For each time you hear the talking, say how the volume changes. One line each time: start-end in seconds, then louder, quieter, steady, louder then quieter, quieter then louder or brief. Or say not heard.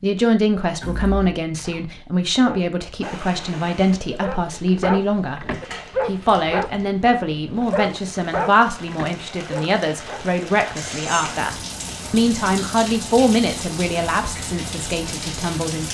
0.0-15.8 steady.